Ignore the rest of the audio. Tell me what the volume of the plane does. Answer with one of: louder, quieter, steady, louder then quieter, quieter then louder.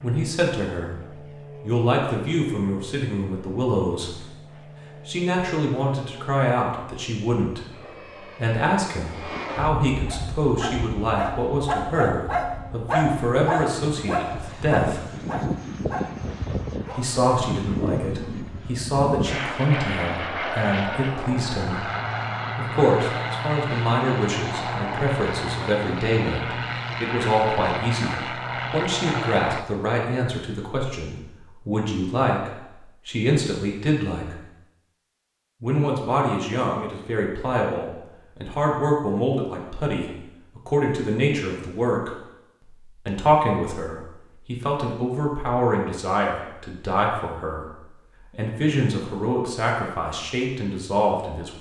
louder.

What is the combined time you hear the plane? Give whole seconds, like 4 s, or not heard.
30 s.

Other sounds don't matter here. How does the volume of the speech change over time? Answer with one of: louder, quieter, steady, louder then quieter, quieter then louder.
steady.